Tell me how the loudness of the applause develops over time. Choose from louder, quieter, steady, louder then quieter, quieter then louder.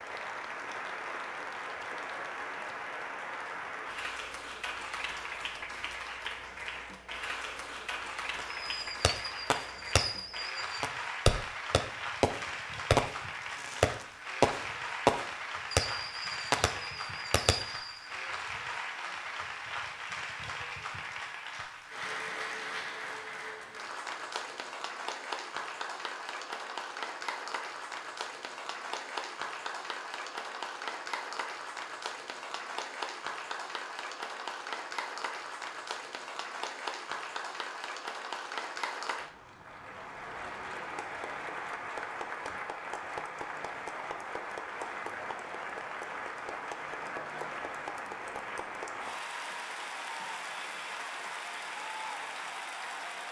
steady.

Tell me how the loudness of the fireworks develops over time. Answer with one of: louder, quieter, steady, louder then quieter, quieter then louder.
louder then quieter.